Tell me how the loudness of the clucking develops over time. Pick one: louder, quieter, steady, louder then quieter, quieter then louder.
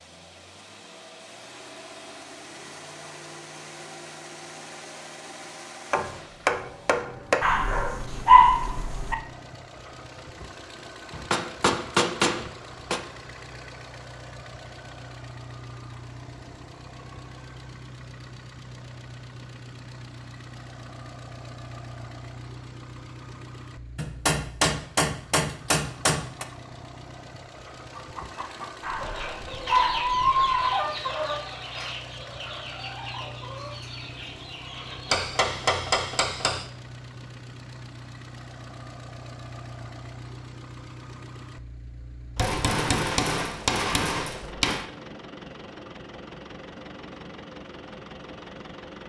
louder then quieter.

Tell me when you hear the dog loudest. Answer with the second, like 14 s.
8 s.